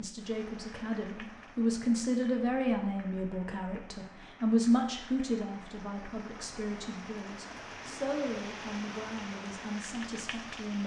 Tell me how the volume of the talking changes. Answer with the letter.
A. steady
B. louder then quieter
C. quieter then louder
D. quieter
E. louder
D.